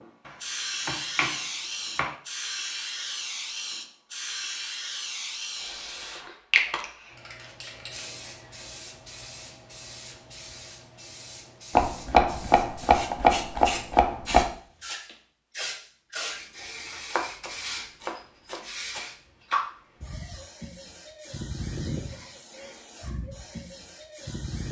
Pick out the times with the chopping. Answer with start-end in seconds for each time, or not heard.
0.2-2.1, 11.8-14.5, 17.1-19.1.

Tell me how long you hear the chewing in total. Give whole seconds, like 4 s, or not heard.
not heard.